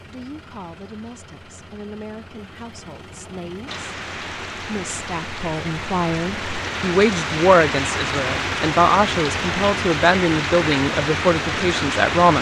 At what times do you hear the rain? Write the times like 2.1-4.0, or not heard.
3.6-12.3.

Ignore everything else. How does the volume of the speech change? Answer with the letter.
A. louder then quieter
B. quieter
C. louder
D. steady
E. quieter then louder
C.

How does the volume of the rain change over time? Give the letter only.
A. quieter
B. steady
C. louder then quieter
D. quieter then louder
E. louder
E.